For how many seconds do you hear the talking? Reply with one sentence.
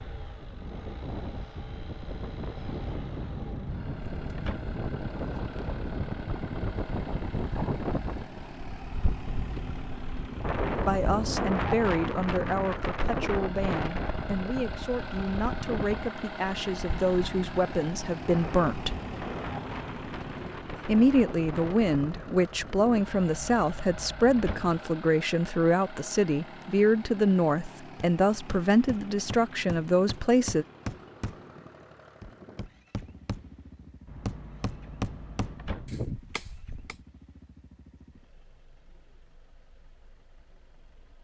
The talking can be heard for 18 seconds in total.